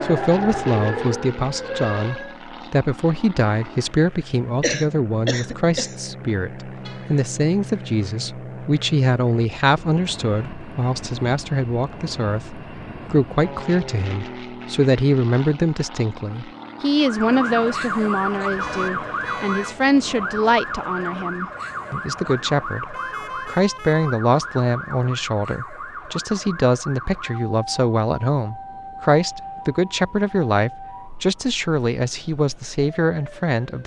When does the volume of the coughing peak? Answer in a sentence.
The volume of the coughing peaks at 5 seconds.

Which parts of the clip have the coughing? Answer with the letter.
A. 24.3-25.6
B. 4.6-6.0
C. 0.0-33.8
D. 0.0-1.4
B.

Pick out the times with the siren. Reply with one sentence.
The siren can be heard from 0.0 to 2.4 s and from 16.9 to 33.8 s.